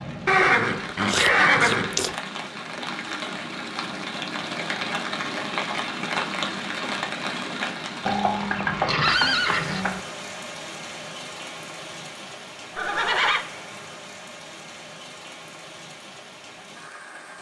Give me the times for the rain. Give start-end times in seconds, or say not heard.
0.0-17.3.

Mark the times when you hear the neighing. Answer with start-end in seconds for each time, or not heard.
0.2-2.1, 8.1-10.0, 12.8-13.4.